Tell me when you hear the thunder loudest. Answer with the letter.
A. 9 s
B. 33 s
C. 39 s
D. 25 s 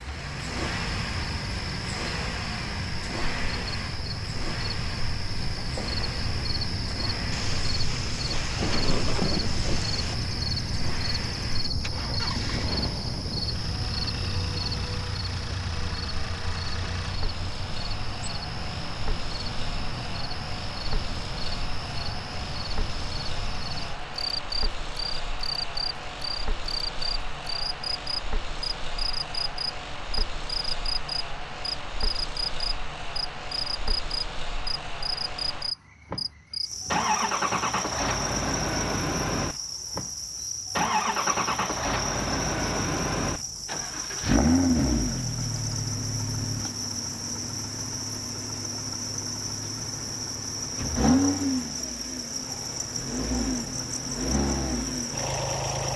A.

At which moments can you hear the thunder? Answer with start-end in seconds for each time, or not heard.
7.3-10.2.